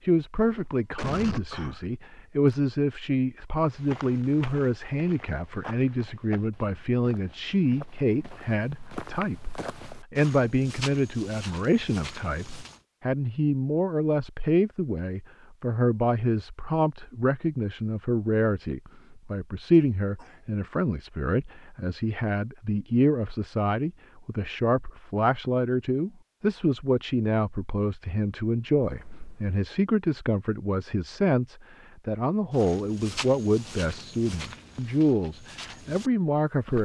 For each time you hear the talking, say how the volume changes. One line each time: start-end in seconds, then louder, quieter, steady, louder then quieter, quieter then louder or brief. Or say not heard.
0.0-36.7 steady.